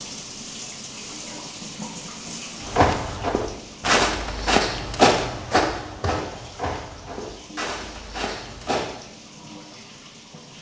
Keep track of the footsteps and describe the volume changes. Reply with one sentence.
The loudness of the footsteps goes down.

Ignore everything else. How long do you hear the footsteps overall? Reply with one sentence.
The footsteps can be heard for 6 seconds in total.